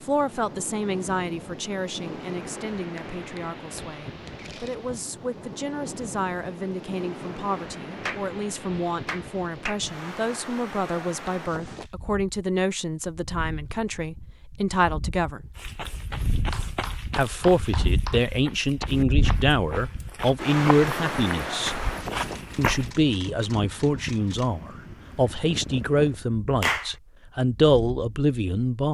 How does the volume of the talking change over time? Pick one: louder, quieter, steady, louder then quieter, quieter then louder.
louder.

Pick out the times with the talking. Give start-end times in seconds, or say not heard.
0.0-15.4, 17.1-21.8, 22.6-28.8.